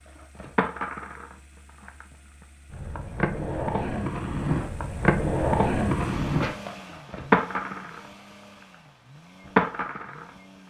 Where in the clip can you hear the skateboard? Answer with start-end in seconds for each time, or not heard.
0.1-8.1, 9.4-10.3.